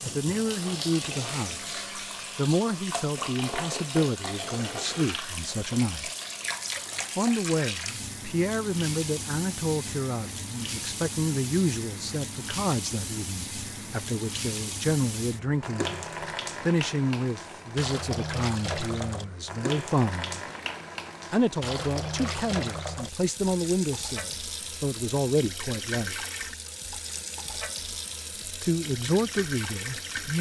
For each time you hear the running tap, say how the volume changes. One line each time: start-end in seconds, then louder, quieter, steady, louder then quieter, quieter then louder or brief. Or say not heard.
0.0-30.3 steady.